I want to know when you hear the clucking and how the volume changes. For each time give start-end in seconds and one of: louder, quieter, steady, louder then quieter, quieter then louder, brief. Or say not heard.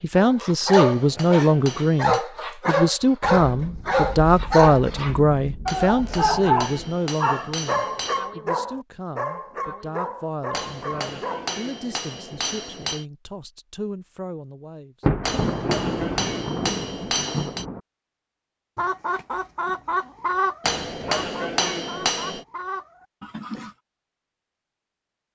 18.8-23.8 quieter.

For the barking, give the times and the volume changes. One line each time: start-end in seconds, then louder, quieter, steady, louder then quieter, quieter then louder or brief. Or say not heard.
0.1-11.6 quieter.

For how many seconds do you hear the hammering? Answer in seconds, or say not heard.
11 s.